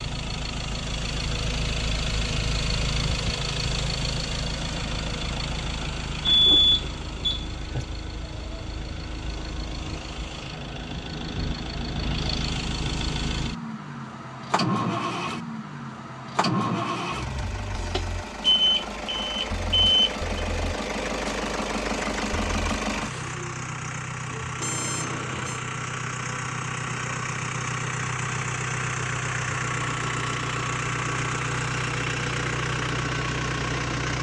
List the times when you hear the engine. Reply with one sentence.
You can hear the engine from 0.0 to 34.1 s.